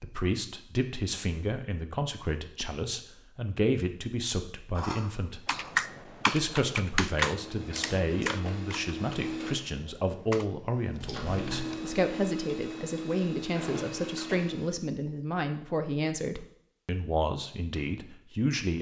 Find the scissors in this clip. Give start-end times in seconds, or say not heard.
4.7-5.7, 11.0-11.7.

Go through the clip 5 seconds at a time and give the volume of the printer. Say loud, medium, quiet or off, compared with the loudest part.
off, loud, loud, off.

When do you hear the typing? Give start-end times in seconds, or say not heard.
5.5-11.8.